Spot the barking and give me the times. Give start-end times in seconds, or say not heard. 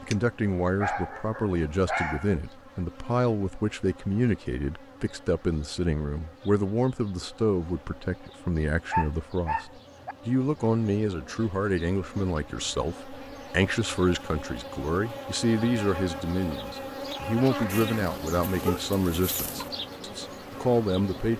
0.8-2.4, 8.9-10.2, 17.6-19.7.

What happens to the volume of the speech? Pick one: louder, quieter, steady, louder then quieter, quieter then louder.
steady.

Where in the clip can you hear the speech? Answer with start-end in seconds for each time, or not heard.
0.0-21.3.